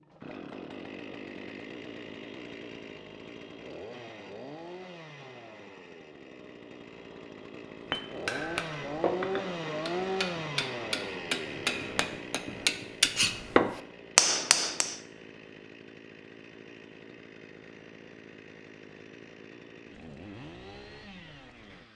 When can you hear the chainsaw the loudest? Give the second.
10 s.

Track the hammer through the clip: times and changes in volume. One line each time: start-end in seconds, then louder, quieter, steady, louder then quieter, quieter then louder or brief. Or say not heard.
7.9-14.9 louder.